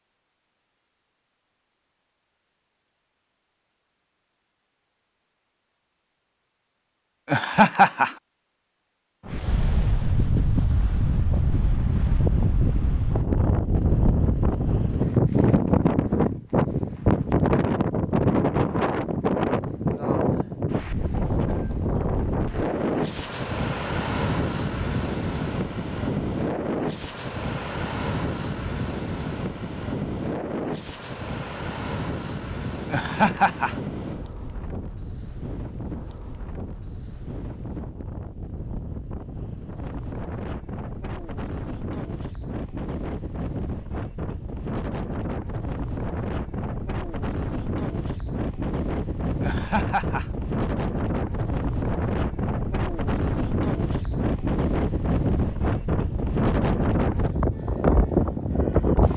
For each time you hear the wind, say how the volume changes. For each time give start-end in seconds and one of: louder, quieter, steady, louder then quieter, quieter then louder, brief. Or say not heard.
9.2-59.1 quieter then louder.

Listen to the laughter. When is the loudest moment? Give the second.
8 s.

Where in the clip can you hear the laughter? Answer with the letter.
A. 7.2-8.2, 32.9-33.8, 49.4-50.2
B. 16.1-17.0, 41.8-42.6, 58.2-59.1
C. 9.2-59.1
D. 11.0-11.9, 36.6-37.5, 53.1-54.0
A.